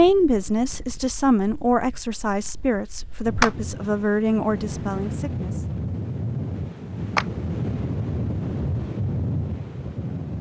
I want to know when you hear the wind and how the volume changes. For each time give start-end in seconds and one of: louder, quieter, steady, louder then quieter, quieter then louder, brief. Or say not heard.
0.0-10.3 louder.